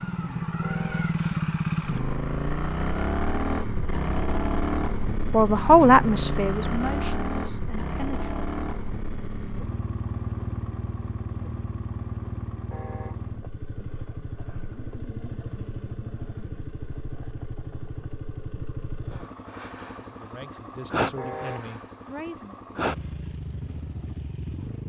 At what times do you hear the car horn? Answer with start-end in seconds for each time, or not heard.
0.6-1.1, 12.7-13.2, 21.1-21.7.